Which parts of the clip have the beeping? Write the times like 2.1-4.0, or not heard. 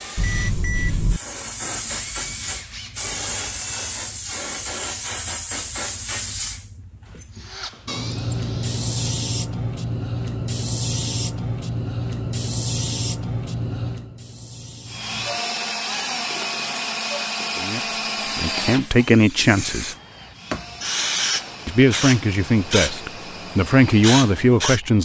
0.1-1.2.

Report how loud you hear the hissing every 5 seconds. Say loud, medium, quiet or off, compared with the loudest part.
loud, loud, loud, medium, loud.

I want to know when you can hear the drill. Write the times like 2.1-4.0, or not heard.
0.0-4.0, 7.2-9.2, 14.8-24.9.